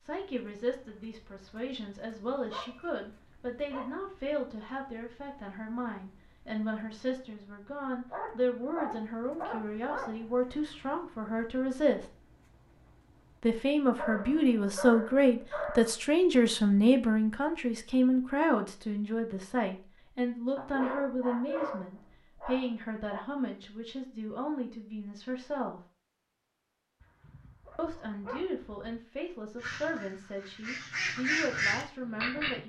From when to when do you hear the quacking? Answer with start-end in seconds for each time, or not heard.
29.6-32.6.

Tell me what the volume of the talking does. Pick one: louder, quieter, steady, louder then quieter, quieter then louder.
louder then quieter.